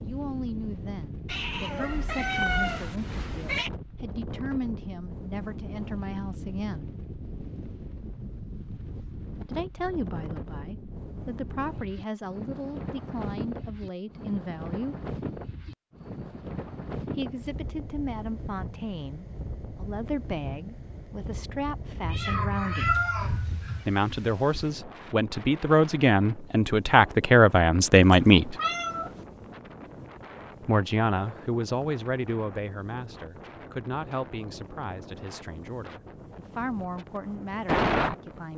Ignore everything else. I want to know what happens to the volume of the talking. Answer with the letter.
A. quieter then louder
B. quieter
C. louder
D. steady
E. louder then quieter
E.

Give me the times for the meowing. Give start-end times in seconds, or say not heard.
1.2-3.7, 22.0-23.9, 28.0-29.2.